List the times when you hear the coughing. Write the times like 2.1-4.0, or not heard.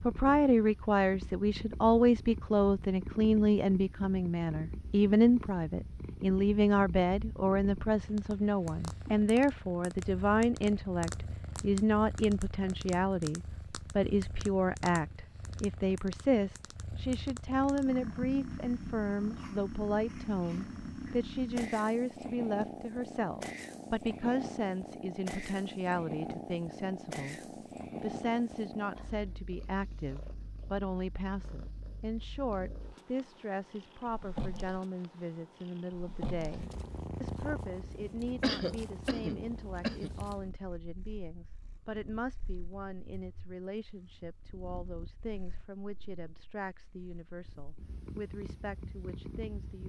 38.4-40.1.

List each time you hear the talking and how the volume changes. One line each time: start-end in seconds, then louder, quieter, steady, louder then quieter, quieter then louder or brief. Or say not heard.
0.0-27.4 quieter
28.0-49.8 quieter.